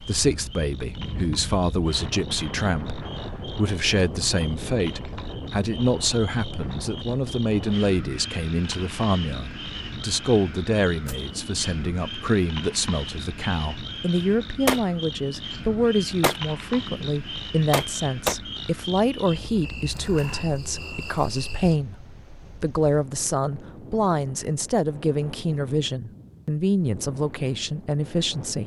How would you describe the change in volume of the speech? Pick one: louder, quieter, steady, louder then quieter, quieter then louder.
steady.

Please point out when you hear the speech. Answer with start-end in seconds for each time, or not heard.
0.0-28.6.